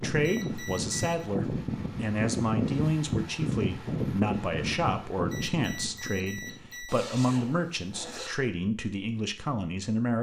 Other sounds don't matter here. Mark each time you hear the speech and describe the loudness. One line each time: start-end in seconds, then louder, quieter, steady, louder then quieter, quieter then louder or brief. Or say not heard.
0.0-10.1 steady.